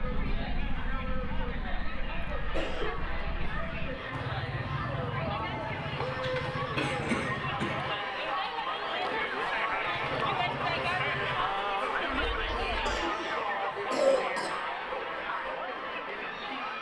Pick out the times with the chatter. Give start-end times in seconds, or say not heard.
0.0-16.7.